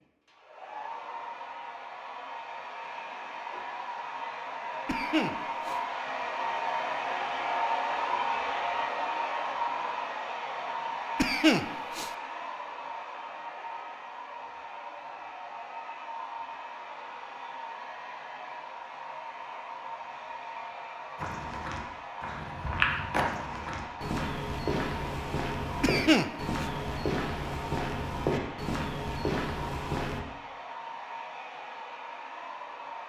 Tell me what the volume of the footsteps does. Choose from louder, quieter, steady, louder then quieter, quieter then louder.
steady.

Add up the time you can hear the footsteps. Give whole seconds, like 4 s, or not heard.
9 s.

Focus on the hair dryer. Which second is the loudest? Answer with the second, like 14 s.
8 s.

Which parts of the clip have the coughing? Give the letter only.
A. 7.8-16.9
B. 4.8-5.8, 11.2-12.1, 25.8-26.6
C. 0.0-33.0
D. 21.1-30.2
B.